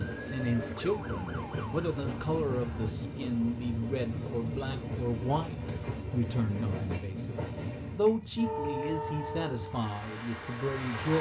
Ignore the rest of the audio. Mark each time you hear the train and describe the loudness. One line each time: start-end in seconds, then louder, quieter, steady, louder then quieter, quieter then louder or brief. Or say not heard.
0.0-11.1 steady.